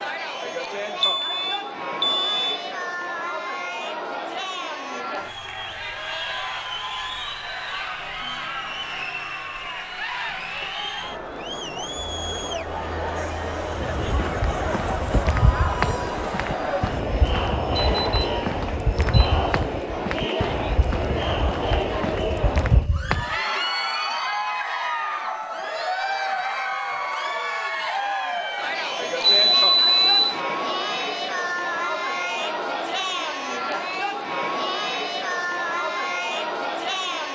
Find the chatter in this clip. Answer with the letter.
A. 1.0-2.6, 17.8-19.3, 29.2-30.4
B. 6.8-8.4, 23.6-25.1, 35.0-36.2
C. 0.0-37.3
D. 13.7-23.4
C.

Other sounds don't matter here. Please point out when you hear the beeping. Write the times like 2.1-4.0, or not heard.
1.0-2.6, 17.8-19.3, 29.2-30.4.